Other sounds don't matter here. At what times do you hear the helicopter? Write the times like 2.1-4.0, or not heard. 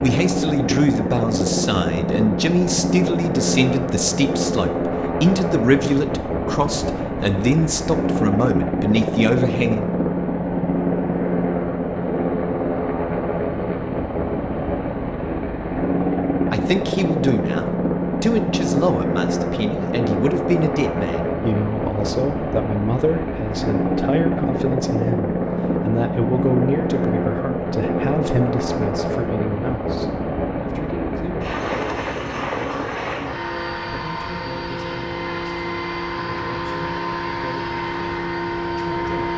0.0-39.3.